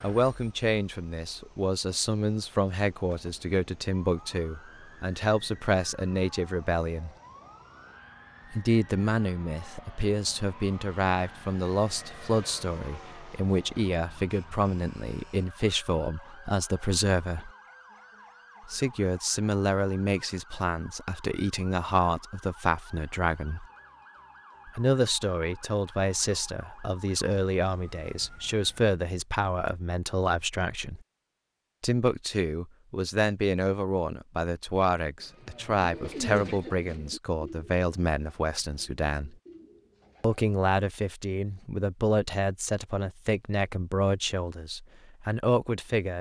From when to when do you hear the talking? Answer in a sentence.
The talking can be heard from 0.0 to 7.1 s, from 8.5 to 17.5 s, from 18.6 to 23.6 s, from 24.6 to 31.0 s, from 31.8 to 39.4 s and from 40.2 to 46.1 s.